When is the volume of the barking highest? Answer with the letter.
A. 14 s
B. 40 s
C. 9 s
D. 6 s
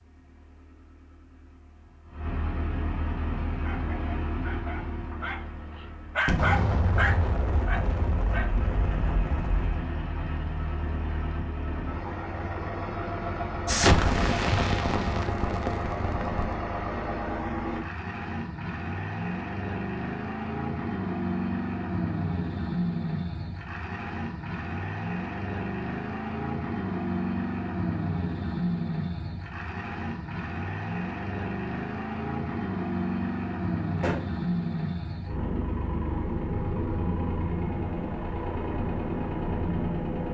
D.